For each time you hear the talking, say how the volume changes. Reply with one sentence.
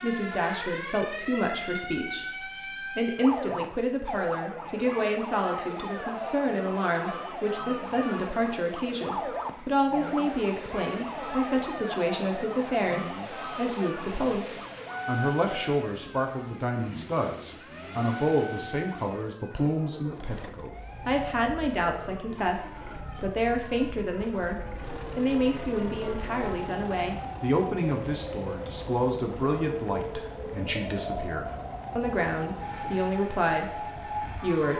The talking can be heard from 0.0 to 34.7 s, at a steady volume.